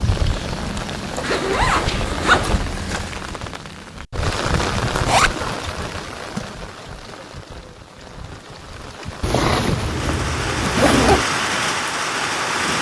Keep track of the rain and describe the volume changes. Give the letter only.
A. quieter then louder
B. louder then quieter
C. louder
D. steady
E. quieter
A.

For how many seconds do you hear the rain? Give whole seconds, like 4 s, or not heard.
13 s.